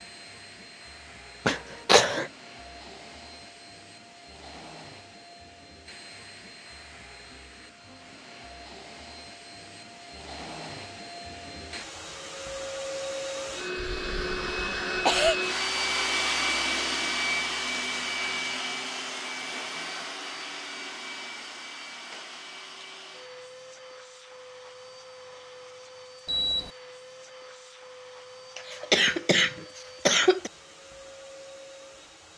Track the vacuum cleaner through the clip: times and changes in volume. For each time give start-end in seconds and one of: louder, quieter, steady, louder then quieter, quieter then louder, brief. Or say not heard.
0.0-32.3 louder then quieter.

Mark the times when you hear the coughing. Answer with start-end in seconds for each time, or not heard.
1.4-2.2, 13.9-15.4, 28.6-30.5.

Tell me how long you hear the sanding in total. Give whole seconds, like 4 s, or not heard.
not heard.